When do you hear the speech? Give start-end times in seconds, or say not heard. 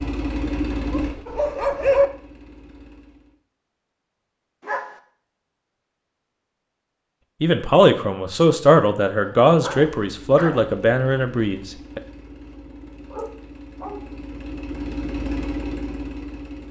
7.4-12.0.